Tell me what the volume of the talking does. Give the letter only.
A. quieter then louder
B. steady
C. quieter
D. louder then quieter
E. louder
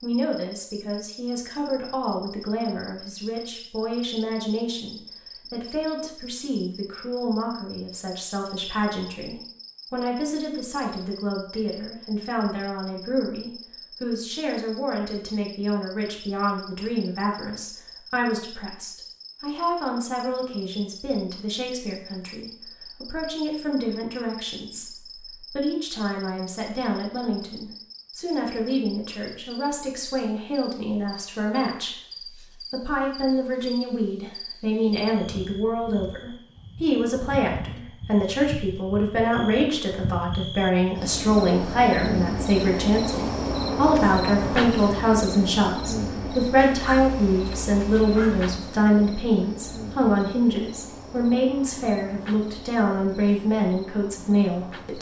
E.